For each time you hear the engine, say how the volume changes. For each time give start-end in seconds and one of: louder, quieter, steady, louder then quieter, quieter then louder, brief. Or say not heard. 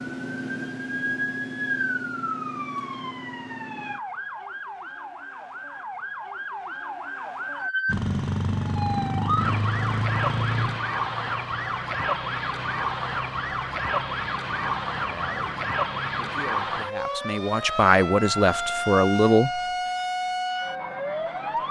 7.8-16.4 quieter.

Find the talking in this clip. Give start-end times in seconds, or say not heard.
15.0-19.6.